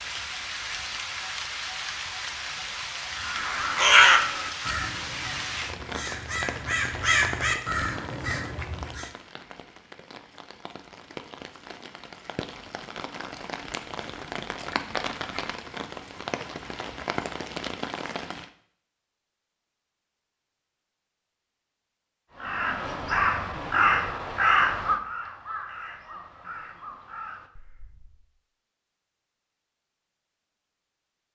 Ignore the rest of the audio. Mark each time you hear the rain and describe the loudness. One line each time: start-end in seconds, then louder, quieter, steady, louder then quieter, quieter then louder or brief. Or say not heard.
0.0-18.5 quieter then louder.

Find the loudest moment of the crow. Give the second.
4 s.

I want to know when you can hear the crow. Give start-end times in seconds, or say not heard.
3.1-9.1, 22.4-28.2.